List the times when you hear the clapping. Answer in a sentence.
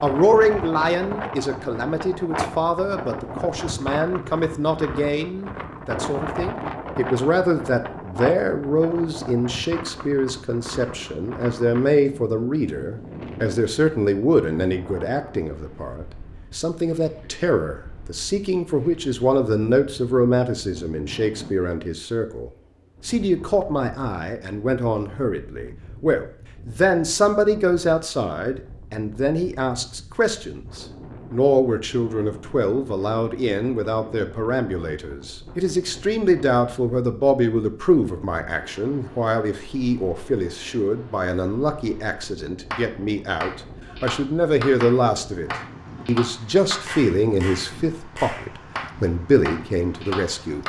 The clapping can be heard from 42.7 to 50.6 s.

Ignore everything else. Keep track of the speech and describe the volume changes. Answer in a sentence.
The volume of the speech stays about the same.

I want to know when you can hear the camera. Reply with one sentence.
The camera can't be heard in this clip.